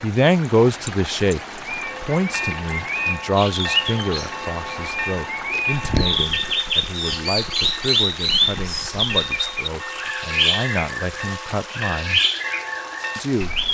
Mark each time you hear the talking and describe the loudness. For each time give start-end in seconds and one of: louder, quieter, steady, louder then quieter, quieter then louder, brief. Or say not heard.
0.0-12.2 quieter
13.2-13.6 brief.